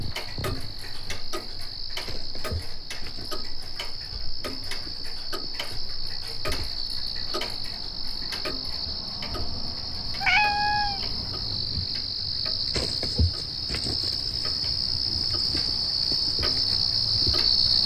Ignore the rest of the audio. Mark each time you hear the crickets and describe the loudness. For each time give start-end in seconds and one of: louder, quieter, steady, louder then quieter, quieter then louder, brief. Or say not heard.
0.0-17.8 louder.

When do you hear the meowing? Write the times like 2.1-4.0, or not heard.
10.1-11.5.